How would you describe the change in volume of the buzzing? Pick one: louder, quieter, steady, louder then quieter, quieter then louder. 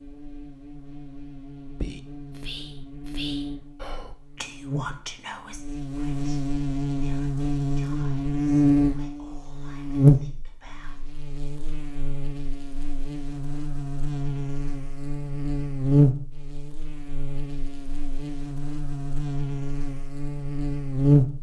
louder then quieter.